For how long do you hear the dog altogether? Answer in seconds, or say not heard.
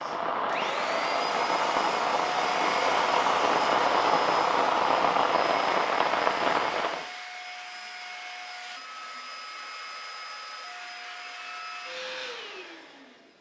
not heard.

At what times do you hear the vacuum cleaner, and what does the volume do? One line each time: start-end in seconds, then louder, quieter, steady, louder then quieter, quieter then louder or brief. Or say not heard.
0.0-13.3 quieter.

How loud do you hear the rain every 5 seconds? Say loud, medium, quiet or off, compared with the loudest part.
loud, loud, off.